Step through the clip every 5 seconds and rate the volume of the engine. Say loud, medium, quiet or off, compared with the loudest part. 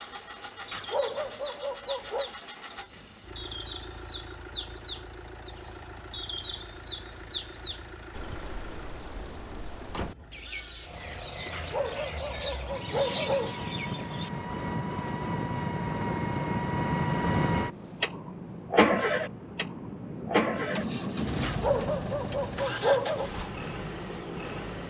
quiet, quiet, medium, loud, medium.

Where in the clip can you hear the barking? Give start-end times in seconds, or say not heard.
0.7-2.3, 11.5-13.6, 21.4-23.3.